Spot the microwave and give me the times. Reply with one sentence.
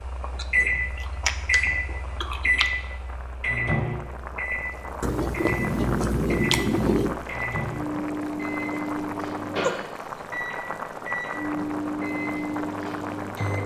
The microwave can be heard from 0.0 to 13.6 s.